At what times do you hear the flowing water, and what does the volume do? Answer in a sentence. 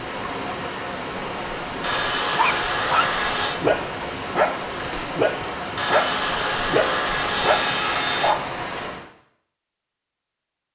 The flowing water can be heard from 0.0 to 9.1 s, at a steady volume.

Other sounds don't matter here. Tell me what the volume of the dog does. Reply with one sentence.
The loudness of the dog stays about the same.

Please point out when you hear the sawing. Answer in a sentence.
The sawing can be heard from 1.8 to 3.6 s and from 5.8 to 8.3 s.